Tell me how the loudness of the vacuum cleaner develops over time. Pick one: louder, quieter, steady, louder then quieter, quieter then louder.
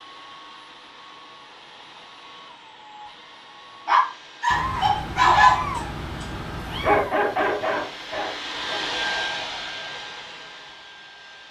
louder.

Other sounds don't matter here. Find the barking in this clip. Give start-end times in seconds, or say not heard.
3.9-8.9.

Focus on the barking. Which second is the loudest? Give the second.
5 s.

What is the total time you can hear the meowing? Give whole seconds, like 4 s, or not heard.
3 s.